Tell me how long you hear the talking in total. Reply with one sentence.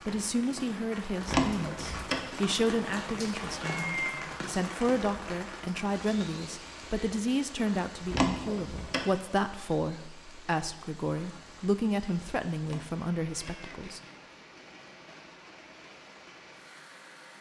You can hear the talking for 14 seconds altogether.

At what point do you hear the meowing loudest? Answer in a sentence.
The loudest moment of the meowing is at 4 seconds.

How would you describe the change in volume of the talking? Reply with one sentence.
The loudness of the talking stays about the same.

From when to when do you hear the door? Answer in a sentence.
You can hear the door from 1.2 to 2.3 s, from 8.1 to 9.1 s and from 12.6 to 13.7 s.